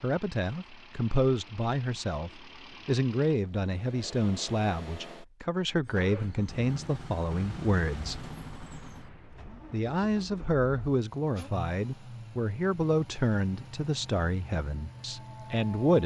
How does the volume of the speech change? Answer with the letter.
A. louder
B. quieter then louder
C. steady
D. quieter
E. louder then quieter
C.